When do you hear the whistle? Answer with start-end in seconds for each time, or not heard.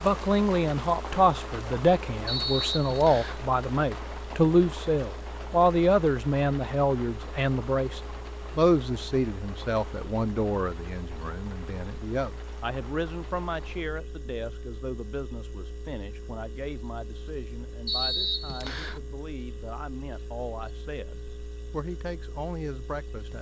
2.2-3.4, 17.9-19.0.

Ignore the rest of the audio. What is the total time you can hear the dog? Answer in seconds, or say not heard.
not heard.